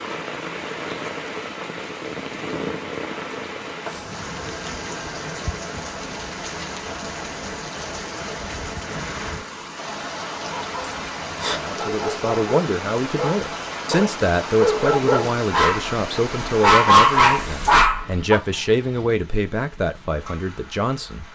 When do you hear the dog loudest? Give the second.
17 s.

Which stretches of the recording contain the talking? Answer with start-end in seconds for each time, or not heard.
11.5-21.2.